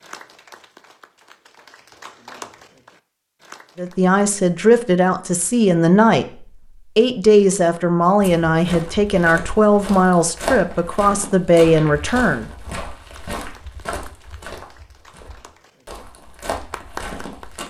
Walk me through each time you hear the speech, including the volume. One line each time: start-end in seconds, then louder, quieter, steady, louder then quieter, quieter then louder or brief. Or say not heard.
3.8-12.5 steady.